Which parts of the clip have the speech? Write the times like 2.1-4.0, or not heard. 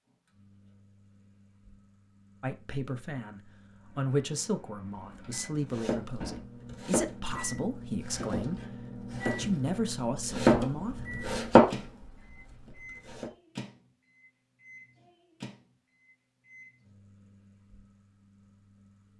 2.4-11.1.